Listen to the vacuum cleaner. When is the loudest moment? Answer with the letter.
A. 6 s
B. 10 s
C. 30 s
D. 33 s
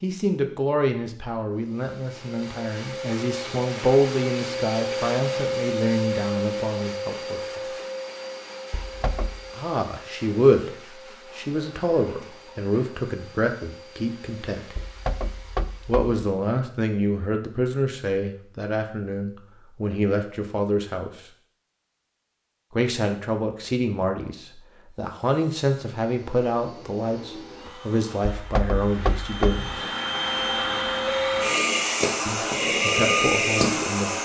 D.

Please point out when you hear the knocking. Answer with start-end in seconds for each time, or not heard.
8.7-9.4, 14.8-16.1, 28.4-29.6.